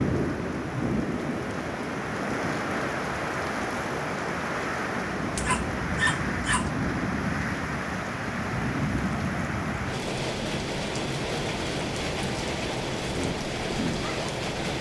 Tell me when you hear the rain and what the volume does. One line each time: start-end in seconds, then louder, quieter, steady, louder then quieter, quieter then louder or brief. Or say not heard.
0.0-14.7 steady.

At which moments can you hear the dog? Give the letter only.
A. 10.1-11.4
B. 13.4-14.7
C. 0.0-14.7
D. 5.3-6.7
D.